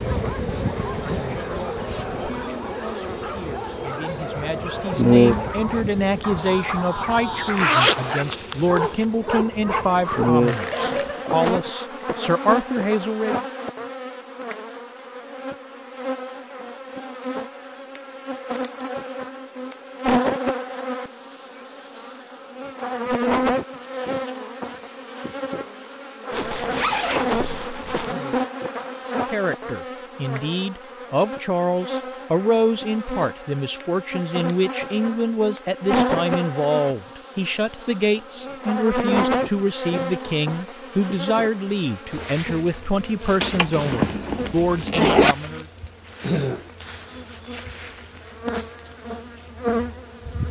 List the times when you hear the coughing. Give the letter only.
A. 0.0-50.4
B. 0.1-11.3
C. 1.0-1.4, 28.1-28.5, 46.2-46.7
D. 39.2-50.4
C.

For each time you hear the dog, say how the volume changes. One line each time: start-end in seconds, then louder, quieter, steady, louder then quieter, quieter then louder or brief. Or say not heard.
0.1-11.3 louder.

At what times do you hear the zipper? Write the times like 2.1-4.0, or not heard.
7.5-9.1, 26.3-28.1, 43.4-45.4.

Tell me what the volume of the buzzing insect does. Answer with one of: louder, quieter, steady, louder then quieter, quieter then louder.
quieter.